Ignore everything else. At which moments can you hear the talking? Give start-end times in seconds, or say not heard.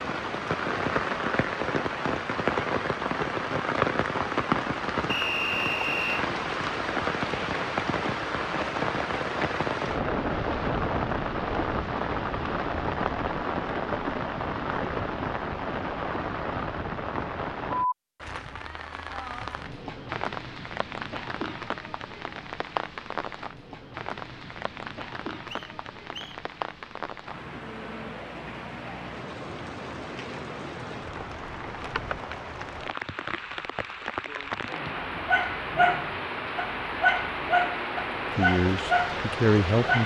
38.3-40.0.